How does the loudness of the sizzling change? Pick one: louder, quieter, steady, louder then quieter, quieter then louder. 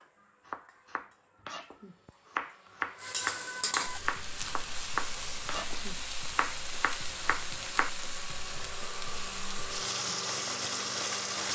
louder.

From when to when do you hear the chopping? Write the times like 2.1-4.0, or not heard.
0.5-8.1.